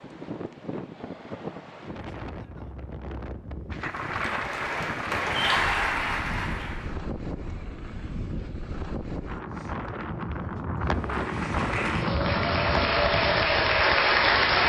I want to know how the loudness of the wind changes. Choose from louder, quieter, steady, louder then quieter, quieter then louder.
louder.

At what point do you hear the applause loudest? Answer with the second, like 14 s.
14 s.